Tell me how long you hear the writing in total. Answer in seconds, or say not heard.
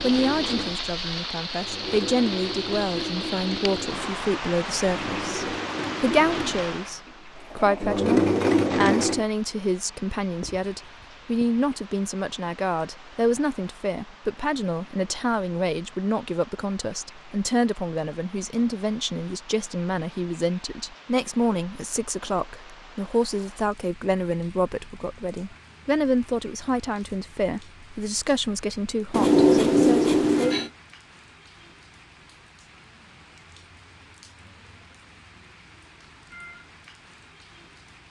3 s.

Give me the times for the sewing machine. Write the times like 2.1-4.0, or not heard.
0.0-9.2.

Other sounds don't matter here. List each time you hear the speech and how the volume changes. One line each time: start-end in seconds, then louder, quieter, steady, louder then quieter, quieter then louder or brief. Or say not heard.
0.0-30.6 steady.